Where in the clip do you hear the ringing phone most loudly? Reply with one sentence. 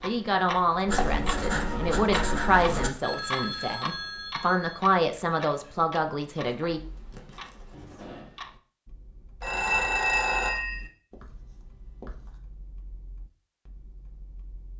The volume of the ringing phone peaks at 10 seconds.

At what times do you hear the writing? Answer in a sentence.
The writing can be heard from 0.8 to 2.9 s, from 6.4 to 8.2 s and from 11.1 to 12.4 s.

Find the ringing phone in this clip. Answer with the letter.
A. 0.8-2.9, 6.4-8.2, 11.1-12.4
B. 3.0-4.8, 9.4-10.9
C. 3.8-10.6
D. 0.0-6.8
B.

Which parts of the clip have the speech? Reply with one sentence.
You can hear the speech from 0.0 to 6.8 s.